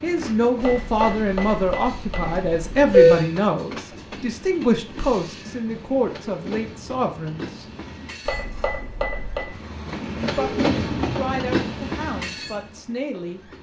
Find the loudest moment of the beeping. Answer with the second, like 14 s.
3 s.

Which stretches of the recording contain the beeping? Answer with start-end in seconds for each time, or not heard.
0.6-3.2, 8.2-9.5.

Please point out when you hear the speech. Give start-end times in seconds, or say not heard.
0.0-7.7, 10.2-13.4.